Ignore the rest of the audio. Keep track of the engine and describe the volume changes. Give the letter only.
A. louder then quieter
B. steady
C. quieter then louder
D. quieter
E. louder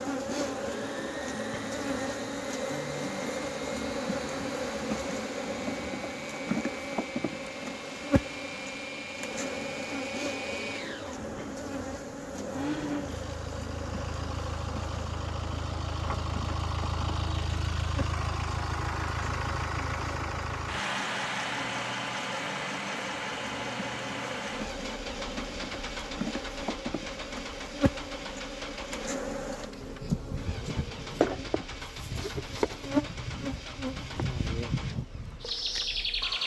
A.